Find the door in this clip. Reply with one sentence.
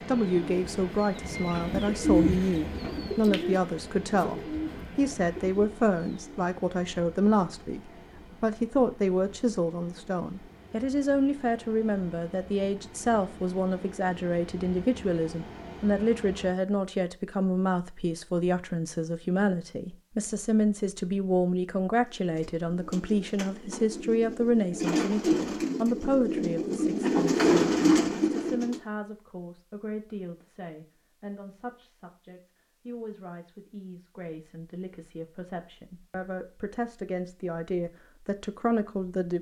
You can't hear the door here.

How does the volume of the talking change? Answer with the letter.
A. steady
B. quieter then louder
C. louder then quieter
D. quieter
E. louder
D.